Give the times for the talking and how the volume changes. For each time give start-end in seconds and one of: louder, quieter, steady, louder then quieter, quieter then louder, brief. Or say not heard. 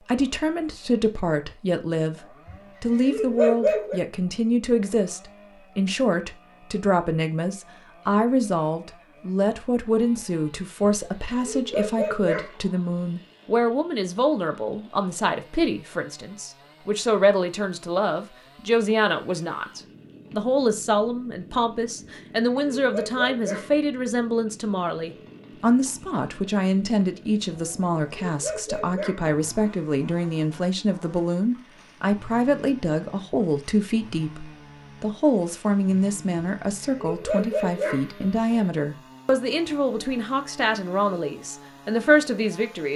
0.0-42.9 steady.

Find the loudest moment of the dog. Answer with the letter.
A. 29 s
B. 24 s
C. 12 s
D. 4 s
D.